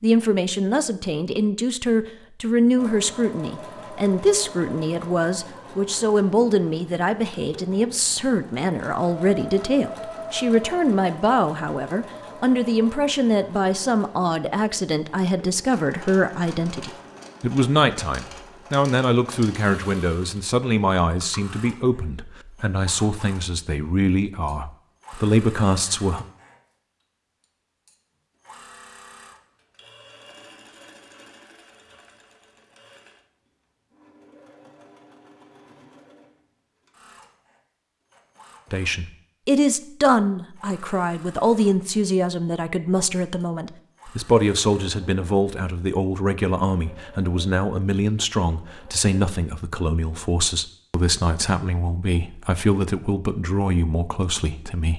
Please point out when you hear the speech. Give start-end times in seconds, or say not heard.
0.0-26.2, 38.7-54.9.